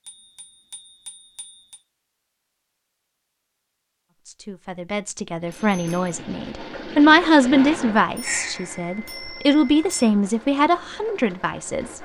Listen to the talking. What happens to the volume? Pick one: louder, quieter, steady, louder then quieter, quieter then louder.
louder then quieter.